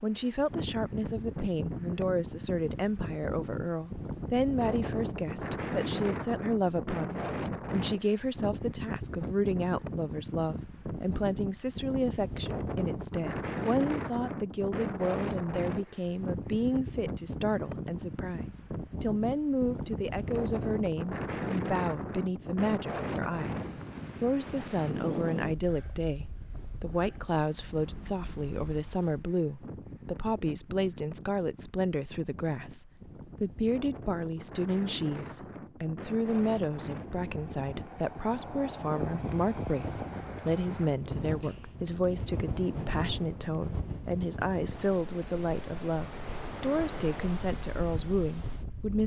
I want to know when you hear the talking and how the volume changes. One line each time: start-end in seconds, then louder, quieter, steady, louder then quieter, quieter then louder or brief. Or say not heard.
0.0-49.0 steady.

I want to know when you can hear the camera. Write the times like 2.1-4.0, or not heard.
not heard.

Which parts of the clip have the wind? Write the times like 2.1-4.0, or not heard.
0.0-49.0.